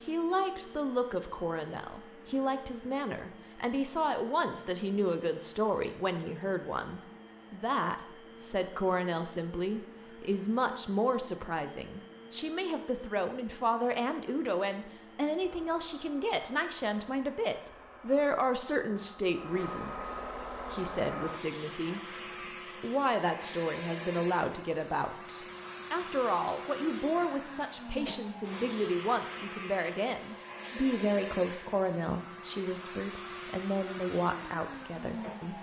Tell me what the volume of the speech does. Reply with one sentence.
The loudness of the speech stays about the same.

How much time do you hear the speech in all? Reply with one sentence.
The speech can be heard for 35 seconds in total.